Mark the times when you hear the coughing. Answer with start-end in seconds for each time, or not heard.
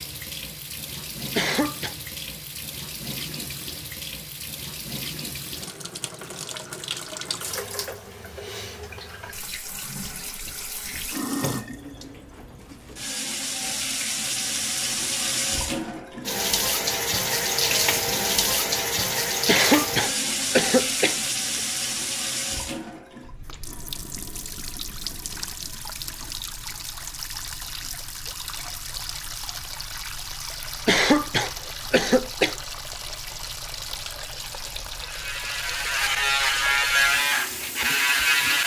1.4-1.9, 19.4-21.6, 30.9-32.5.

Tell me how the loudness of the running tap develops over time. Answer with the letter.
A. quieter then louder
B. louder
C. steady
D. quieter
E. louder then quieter
E.